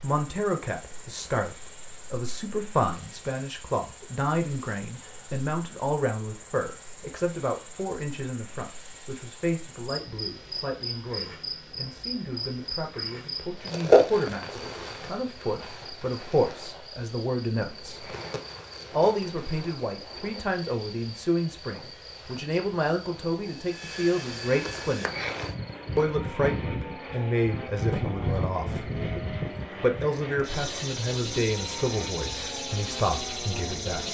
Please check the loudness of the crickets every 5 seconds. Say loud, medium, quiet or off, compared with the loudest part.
quiet, quiet, loud, quiet, quiet, medium, medium.